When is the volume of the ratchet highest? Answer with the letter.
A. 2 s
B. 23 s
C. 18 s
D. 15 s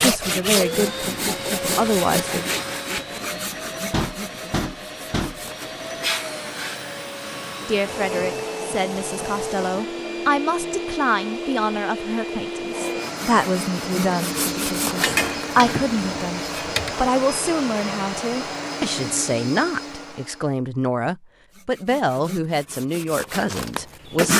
D.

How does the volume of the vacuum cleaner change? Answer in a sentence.
The volume of the vacuum cleaner stays about the same.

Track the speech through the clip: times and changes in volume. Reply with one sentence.
You can hear the speech briefly from 0.0 to 2.5 s; and from 7.6 to 24.3 s, at a steady volume.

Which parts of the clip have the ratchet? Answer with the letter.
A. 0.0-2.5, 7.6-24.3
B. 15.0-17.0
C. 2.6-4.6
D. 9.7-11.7
B.